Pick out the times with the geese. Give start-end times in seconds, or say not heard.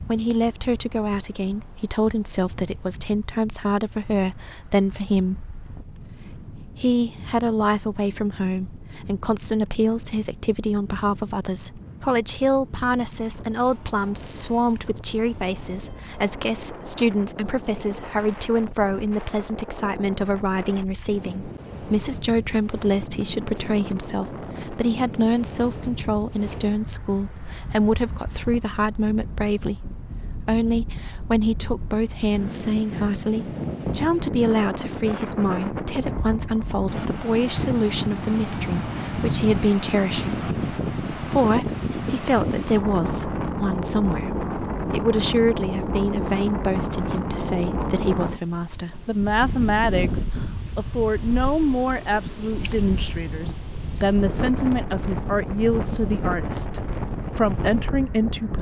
not heard.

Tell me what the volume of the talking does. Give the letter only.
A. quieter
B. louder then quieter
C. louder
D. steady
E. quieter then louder
D.